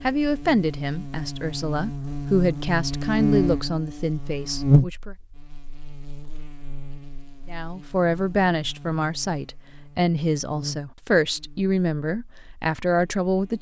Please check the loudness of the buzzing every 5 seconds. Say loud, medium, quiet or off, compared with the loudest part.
loud, quiet, quiet.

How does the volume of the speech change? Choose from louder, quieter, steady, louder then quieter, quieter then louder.
steady.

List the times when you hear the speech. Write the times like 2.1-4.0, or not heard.
0.0-5.2, 7.5-13.5.